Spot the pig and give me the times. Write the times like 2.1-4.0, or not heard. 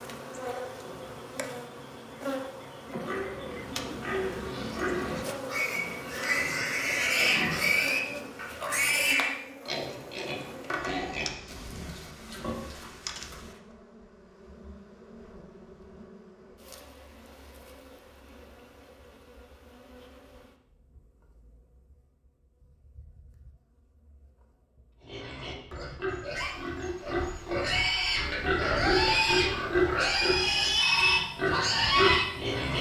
3.0-13.6, 25.0-32.7.